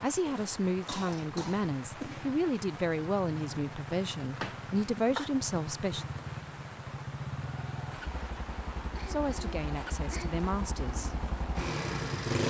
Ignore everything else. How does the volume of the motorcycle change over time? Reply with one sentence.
The loudness of the motorcycle goes up.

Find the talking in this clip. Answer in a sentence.
You can hear the talking from 0.0 to 6.0 s and from 9.1 to 11.2 s.